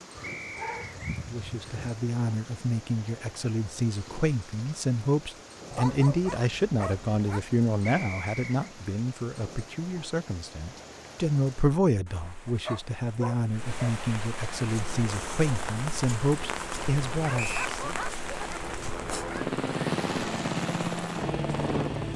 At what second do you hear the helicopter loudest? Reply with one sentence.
The loudest moment of the helicopter is at 20 seconds.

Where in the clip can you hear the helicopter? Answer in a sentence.
You can hear the helicopter from 14.7 to 22.1 s.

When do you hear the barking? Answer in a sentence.
The barking can be heard from 0.1 to 1.9 s, from 5.7 to 7.4 s, from 12.4 to 13.9 s and from 17.2 to 19.5 s.